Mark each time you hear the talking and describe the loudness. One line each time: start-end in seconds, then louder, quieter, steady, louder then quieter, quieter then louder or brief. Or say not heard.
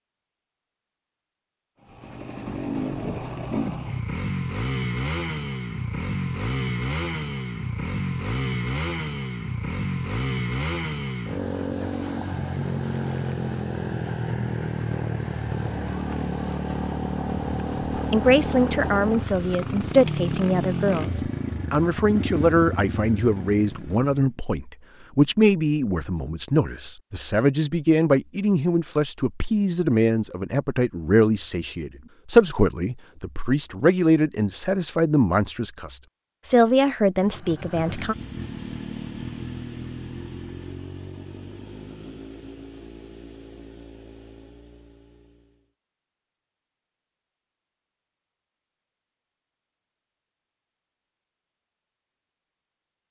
17.9-38.1 steady.